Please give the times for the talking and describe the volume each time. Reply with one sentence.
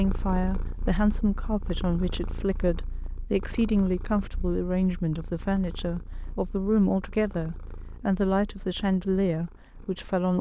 The talking can be heard from 0.0 to 10.3 s, at a steady volume.